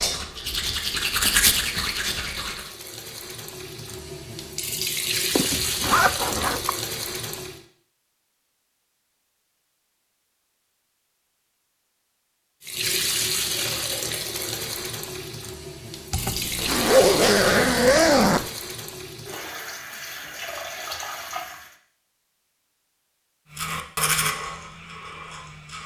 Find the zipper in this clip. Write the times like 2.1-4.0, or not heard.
5.3-6.7, 16.1-18.5.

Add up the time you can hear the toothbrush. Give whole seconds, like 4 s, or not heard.
5 s.